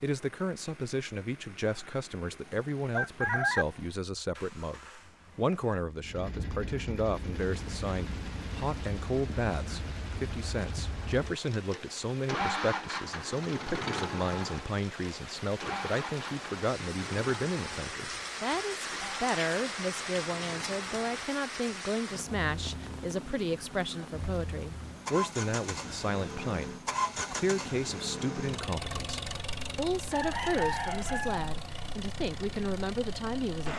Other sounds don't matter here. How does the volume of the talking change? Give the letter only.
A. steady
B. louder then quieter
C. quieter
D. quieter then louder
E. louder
A.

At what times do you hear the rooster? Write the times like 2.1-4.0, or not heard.
1.6-3.6, 30.1-31.5.